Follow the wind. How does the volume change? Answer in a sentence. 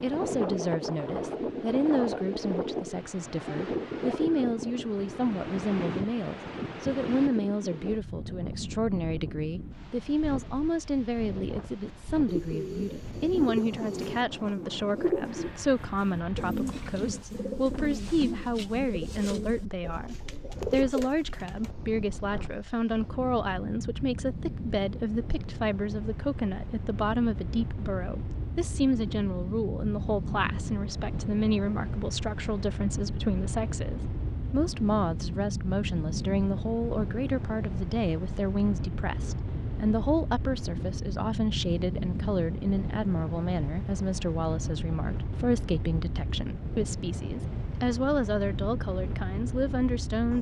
The loudness of the wind goes down, then up.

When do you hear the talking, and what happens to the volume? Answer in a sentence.
You can hear the talking from 0.0 to 50.3 s, at a steady volume.